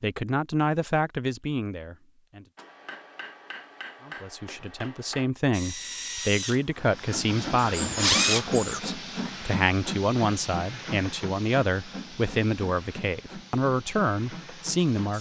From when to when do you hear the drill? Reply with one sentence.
You can hear the drill from 5.5 to 8.8 s.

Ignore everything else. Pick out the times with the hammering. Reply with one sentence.
The hammering can be heard from 2.5 to 5.3 s.